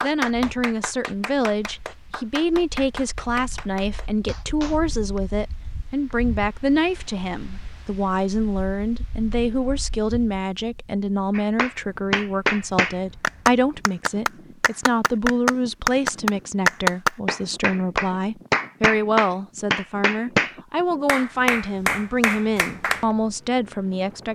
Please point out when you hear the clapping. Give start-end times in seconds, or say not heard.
0.0-5.2, 11.3-23.1.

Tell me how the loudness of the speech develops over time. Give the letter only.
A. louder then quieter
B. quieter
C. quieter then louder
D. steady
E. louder
D.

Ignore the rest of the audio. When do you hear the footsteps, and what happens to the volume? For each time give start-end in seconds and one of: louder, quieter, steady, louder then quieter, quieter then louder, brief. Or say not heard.
not heard.